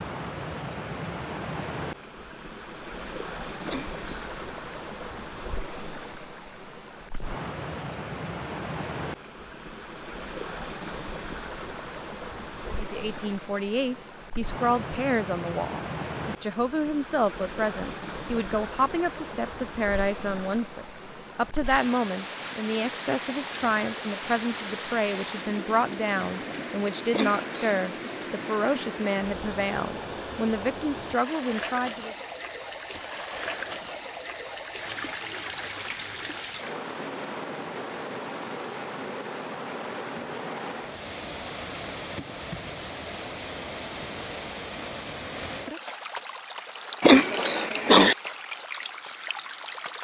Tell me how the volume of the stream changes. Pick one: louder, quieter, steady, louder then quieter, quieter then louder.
steady.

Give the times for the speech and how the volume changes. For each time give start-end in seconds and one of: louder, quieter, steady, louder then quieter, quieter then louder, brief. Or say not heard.
12.7-32.1 steady.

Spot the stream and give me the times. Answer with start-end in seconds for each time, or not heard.
0.0-50.0.